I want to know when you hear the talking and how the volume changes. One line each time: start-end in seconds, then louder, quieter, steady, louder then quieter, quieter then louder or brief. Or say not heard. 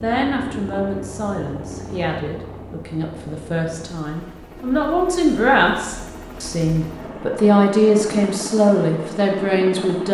0.0-10.0 louder.